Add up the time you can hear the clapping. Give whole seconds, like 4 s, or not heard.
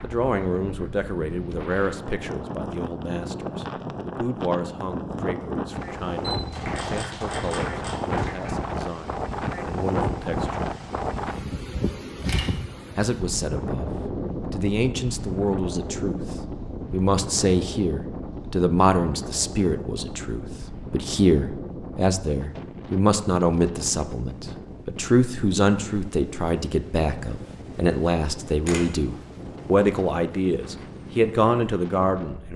2 s.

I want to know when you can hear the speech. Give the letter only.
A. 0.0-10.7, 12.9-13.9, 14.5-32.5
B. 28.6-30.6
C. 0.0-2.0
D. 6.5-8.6
A.